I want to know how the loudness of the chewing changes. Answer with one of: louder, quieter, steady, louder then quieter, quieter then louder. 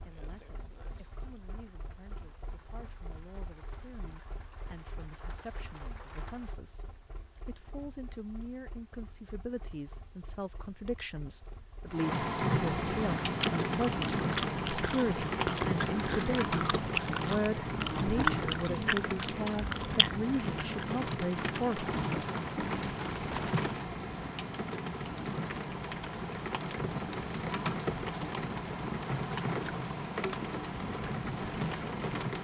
louder then quieter.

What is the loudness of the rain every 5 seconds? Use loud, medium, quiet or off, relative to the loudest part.
quiet, quiet, loud, loud, loud, loud, loud.